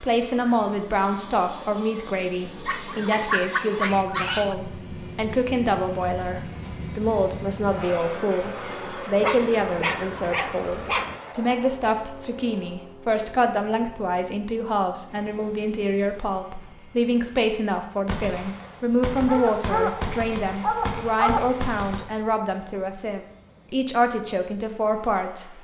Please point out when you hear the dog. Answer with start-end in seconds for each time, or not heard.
2.6-4.5, 9.2-11.2, 19.2-21.6.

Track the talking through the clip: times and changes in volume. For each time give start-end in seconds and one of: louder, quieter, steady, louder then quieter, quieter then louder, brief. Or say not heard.
0.0-25.5 steady.